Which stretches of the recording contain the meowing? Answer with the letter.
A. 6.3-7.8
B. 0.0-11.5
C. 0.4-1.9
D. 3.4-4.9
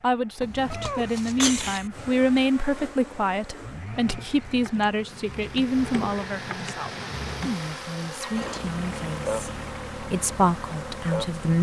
C.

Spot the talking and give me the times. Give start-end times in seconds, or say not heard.
0.0-11.5.